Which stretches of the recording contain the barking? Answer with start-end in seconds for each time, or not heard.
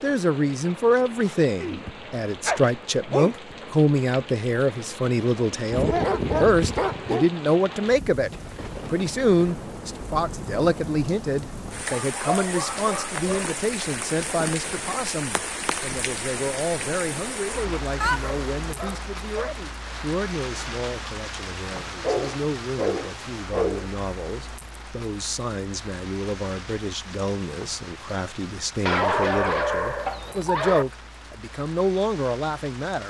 1.6-3.5, 5.7-7.3, 11.9-13.5, 18.0-19.6, 22.0-23.9, 28.8-30.9.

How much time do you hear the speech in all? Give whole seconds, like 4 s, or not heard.
33 s.